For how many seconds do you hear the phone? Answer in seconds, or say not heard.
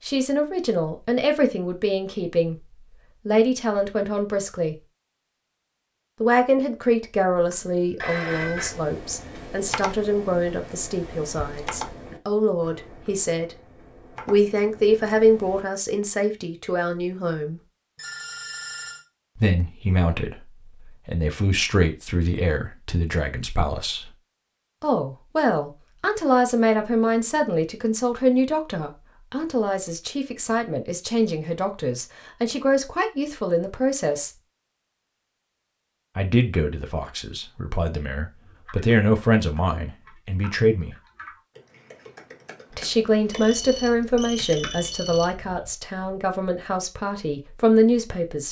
4 s.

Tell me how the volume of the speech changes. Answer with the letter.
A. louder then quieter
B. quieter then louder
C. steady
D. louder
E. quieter
C.